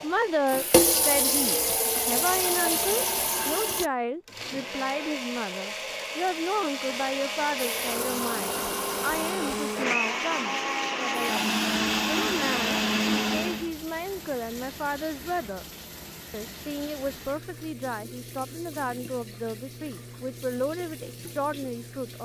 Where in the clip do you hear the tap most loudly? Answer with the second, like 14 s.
1 s.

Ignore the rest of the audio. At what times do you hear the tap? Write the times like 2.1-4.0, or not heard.
0.0-3.9, 7.5-9.2, 11.1-22.2.